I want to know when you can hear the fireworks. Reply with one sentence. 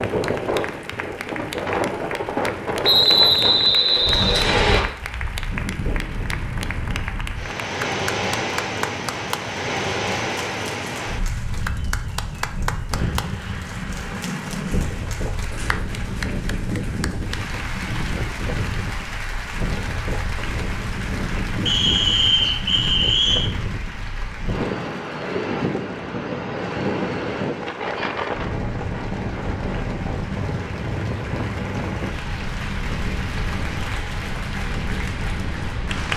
The fireworks can't be heard in this clip.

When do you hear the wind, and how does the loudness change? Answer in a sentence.
You can hear the wind from 0.0 to 36.1 s, at a steady volume.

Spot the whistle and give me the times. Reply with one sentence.
The whistle can be heard from 2.8 to 4.8 s and from 21.6 to 23.5 s.